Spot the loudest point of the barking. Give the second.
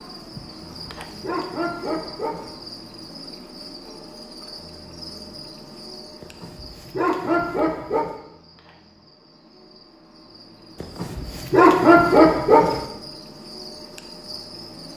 12 s.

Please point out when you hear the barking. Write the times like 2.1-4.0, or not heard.
0.5-2.5, 6.2-8.2, 10.8-12.8.